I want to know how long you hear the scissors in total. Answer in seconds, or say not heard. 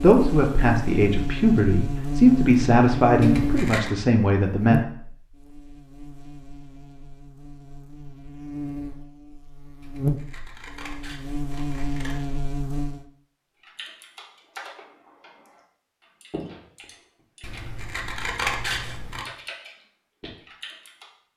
5 s.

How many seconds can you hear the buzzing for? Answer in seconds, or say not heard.
13 s.